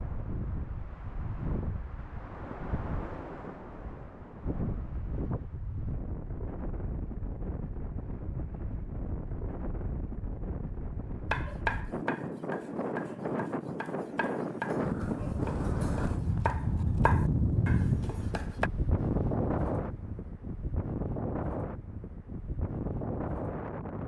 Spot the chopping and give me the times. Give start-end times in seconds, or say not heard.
11.3-18.7.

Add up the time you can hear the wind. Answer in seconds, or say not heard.
24 s.